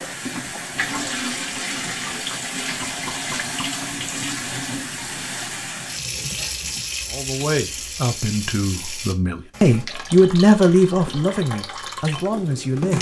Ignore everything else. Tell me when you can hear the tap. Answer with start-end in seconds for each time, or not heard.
0.0-12.9.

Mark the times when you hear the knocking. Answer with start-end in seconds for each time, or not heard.
2.8-3.8.